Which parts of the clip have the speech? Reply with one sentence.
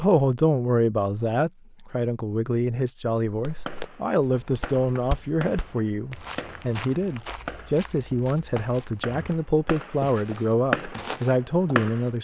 You can hear the speech from 0.0 to 12.1 s.